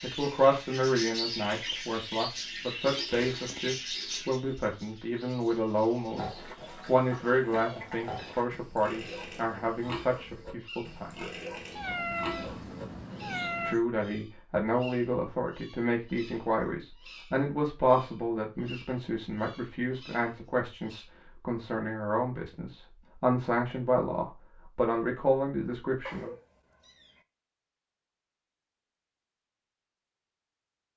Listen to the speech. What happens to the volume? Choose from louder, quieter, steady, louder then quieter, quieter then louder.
steady.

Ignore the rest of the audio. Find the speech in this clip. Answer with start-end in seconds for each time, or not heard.
0.0-6.2, 6.8-11.2, 13.7-26.3.